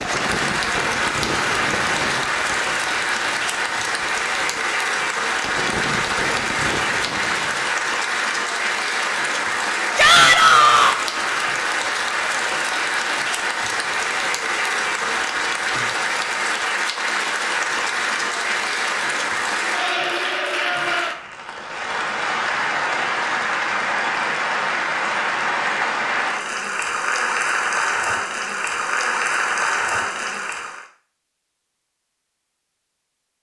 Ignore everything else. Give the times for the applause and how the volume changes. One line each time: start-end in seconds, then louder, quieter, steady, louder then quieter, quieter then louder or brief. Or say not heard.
0.0-30.9 steady.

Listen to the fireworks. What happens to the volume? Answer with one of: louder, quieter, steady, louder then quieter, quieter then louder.
quieter then louder.